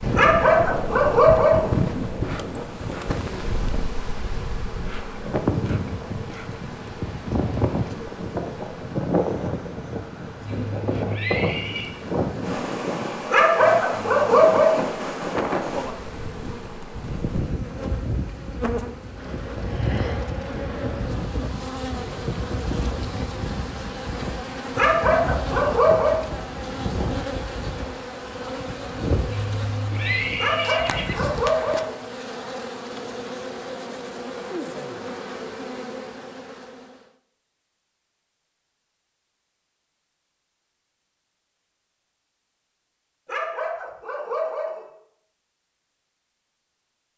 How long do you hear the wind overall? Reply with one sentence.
You can hear the wind for 32 seconds altogether.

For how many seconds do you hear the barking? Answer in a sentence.
You can hear the barking for 8 seconds altogether.